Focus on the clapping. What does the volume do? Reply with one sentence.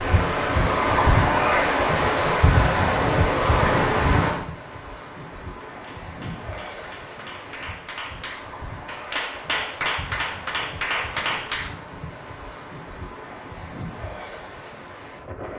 The loudness of the clapping goes up.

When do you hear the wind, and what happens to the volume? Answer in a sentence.
The wind can be heard from 0.0 to 15.5 s, getting quieter.